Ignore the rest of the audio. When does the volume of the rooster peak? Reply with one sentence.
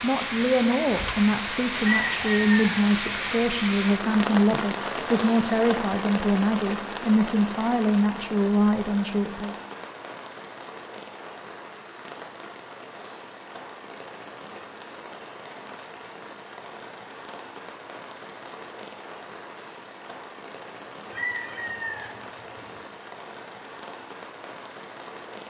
The loudest moment of the rooster is at 2 seconds.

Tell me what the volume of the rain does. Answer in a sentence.
The volume of the rain goes down.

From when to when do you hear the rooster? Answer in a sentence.
You can hear the rooster from 1.8 to 3.4 s and from 21.1 to 22.8 s.